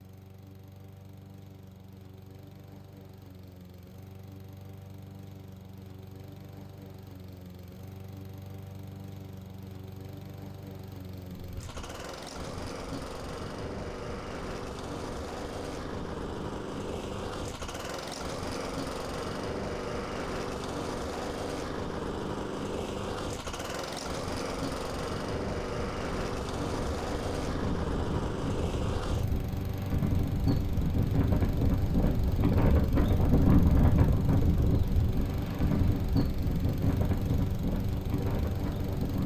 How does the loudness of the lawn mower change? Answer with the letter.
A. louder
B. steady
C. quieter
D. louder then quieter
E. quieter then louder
A.